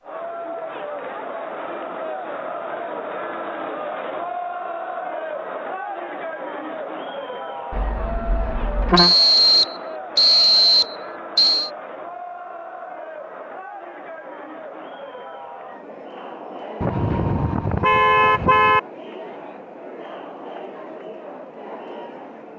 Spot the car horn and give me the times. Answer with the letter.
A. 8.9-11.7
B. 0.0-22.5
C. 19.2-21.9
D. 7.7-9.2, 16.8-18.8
D.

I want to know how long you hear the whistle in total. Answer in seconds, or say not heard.
3 s.